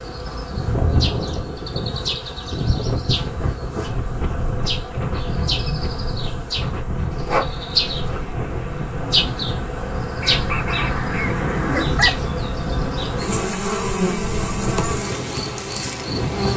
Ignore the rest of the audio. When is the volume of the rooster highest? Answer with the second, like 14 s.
12 s.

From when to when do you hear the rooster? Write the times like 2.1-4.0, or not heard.
10.2-12.1.